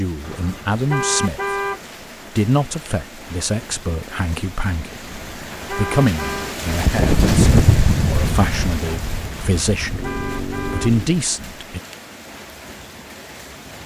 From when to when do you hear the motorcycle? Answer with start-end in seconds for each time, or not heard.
6.8-11.2.